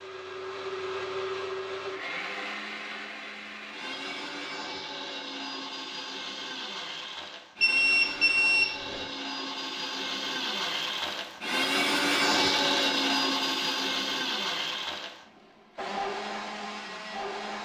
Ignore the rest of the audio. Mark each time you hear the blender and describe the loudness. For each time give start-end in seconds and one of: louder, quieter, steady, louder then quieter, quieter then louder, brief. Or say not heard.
0.0-17.5 louder then quieter.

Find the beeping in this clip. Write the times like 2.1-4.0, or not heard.
7.6-9.1.